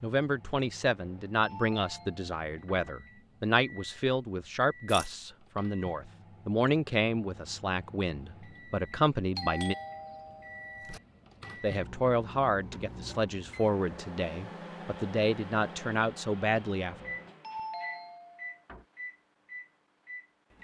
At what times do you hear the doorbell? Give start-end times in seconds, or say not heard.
0.9-3.0, 9.3-11.0, 16.9-18.9.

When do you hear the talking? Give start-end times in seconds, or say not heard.
0.0-9.8, 11.6-16.9.